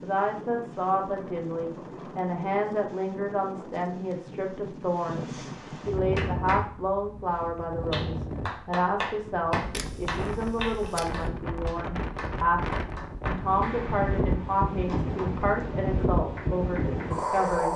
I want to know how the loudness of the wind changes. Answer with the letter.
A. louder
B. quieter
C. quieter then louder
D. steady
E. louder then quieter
A.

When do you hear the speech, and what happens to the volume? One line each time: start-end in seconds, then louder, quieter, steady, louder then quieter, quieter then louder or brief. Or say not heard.
0.0-17.7 steady.